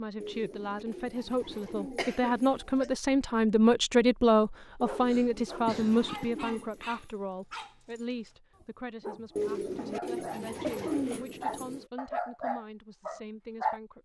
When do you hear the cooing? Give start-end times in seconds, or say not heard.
0.2-2.9, 4.8-7.1, 9.3-11.8.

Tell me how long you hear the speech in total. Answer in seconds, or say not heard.
14 s.